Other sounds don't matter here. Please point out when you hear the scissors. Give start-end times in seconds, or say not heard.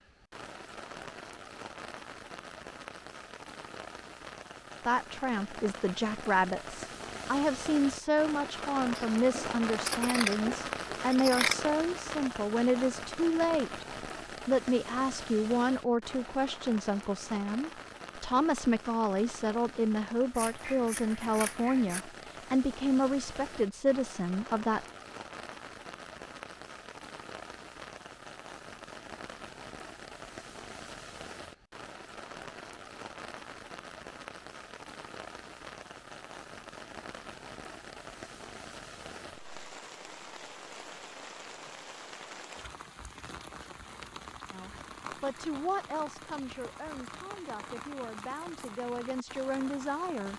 8.9-11.6, 20.4-22.1, 43.2-44.4.